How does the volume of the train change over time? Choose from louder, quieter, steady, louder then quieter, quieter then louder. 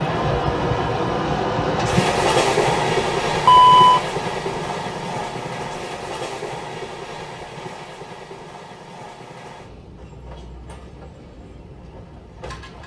quieter.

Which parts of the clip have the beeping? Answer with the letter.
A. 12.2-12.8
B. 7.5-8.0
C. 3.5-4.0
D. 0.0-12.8
C.